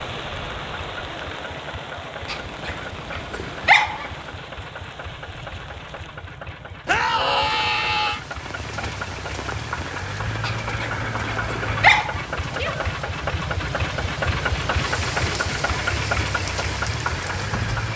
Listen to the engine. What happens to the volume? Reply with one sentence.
The loudness of the engine goes up.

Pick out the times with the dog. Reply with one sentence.
The dog can be heard from 2.2 to 4.2 s and from 10.4 to 12.9 s.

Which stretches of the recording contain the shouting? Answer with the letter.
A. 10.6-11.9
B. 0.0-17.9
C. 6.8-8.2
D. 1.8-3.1
C.